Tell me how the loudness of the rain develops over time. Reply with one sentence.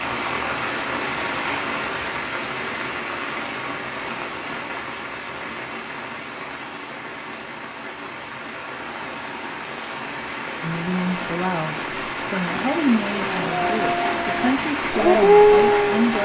The volume of the rain goes down, then up.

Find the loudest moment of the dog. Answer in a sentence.
The loudest moment of the dog is at 15 seconds.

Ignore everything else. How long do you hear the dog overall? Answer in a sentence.
You can hear the dog for 3 seconds altogether.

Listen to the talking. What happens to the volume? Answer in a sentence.
The loudness of the talking stays about the same.